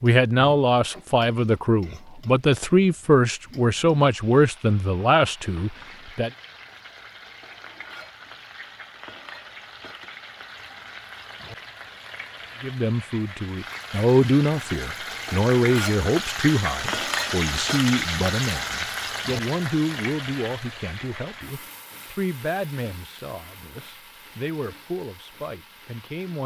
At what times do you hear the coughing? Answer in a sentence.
The coughing can't be heard in this clip.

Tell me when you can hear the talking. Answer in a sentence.
You can hear the talking from 0.0 to 6.3 s and from 12.6 to 26.4 s.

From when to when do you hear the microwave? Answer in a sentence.
The microwave can't be heard in this clip.